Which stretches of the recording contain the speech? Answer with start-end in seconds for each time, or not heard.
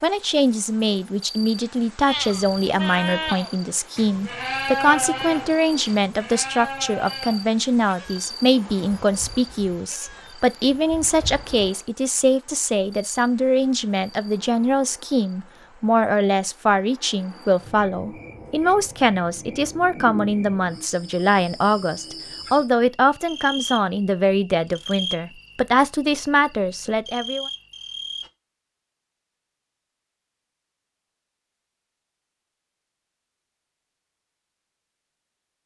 0.0-27.4.